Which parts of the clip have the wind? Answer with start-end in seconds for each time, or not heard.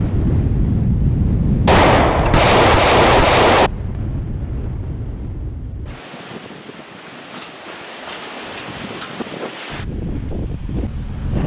0.0-11.4.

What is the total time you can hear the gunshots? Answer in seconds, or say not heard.
2 s.